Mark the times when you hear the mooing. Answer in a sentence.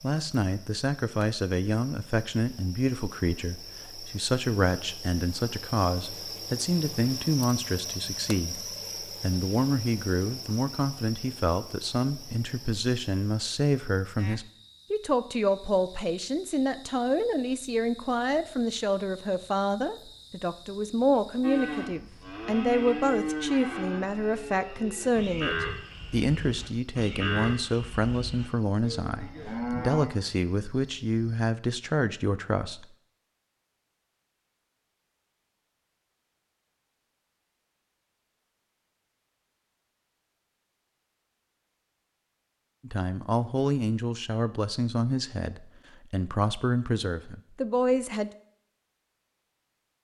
You can hear the mooing from 21.4 to 30.1 s.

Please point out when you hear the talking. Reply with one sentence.
You can hear the talking from 0.0 to 32.9 s and from 42.9 to 48.3 s.